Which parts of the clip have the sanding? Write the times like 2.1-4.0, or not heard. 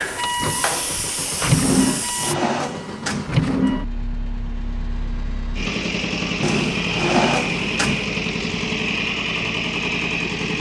not heard.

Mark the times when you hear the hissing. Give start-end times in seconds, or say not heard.
0.0-2.4.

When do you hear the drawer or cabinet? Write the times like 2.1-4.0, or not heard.
1.6-3.4, 6.4-8.1.